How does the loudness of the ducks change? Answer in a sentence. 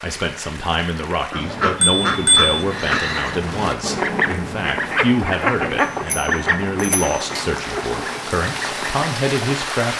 The volume of the ducks goes down.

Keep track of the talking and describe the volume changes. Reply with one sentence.
The loudness of the talking stays about the same.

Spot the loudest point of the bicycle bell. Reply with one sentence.
The volume of the bicycle bell peaks at 2 seconds.